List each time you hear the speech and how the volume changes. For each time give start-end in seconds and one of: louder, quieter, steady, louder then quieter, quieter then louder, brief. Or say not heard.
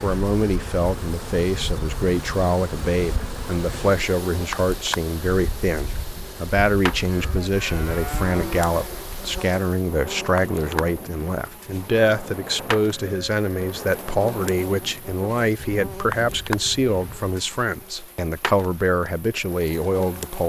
0.0-20.4 steady.